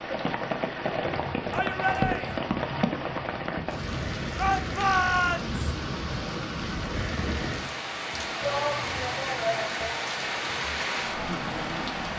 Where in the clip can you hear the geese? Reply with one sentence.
You can't hear the geese here.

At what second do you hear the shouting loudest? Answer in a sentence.
The loudest moment of the shouting is at 5 seconds.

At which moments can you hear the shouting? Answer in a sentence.
The shouting can be heard from 1.5 to 2.4 s, from 4.3 to 5.6 s and from 8.4 to 10.1 s.